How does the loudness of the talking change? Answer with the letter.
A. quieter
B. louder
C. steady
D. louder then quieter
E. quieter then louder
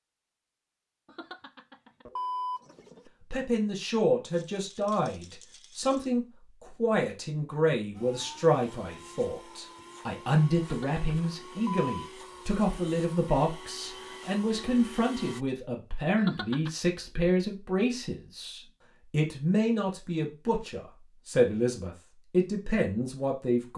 C.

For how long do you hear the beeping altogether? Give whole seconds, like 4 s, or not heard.
4 s.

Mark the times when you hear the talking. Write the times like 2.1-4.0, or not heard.
3.3-23.7.